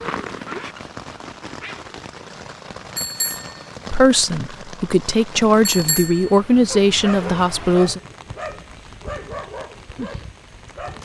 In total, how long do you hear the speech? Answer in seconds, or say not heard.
4 s.